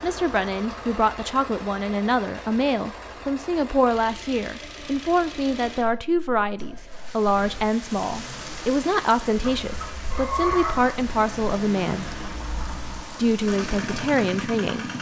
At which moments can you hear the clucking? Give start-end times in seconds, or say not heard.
9.3-11.1.